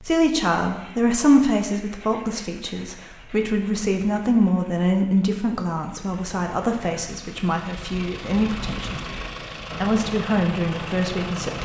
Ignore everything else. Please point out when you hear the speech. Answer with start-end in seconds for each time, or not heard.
0.0-9.1, 9.8-11.6.